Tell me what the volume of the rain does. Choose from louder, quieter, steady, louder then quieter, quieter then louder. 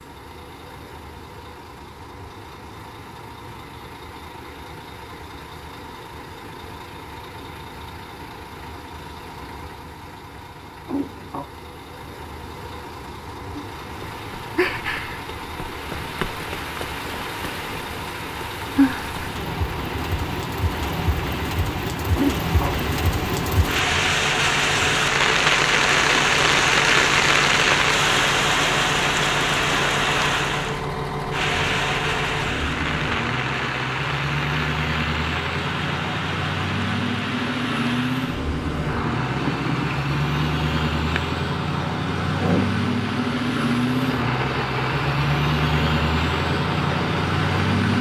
louder then quieter.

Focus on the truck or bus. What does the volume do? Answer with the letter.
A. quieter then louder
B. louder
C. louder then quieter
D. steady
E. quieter
B.